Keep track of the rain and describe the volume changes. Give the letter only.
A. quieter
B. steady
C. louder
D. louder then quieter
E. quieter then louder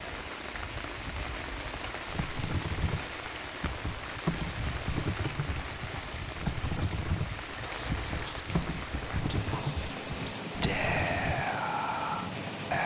B.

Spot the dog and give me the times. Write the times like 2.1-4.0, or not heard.
not heard.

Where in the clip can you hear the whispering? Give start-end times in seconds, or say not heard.
7.6-12.8.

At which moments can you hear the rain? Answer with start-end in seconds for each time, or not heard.
0.0-12.8.